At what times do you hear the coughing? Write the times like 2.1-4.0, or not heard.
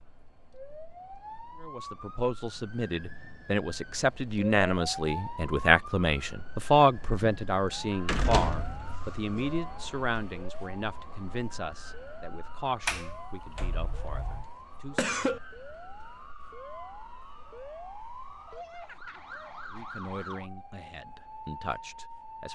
14.9-15.4.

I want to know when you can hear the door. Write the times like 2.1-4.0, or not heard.
7.2-9.5, 12.8-14.4.